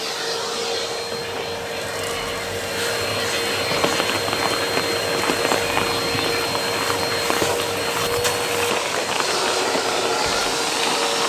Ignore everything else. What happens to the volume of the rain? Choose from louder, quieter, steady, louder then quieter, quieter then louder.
steady.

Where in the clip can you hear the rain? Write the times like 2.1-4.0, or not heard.
3.7-11.2.